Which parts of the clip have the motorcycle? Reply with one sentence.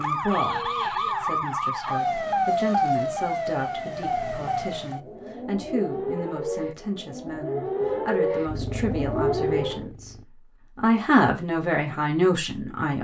The motorcycle can be heard from 8.4 to 10.2 s.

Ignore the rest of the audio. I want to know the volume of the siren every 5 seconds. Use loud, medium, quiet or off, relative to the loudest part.
loud, loud, off.